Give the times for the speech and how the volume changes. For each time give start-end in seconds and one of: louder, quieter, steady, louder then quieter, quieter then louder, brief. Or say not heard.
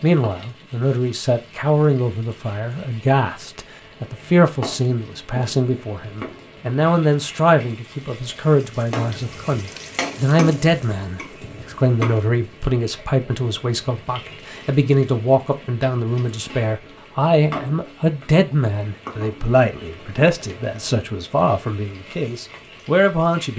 0.0-23.5 steady.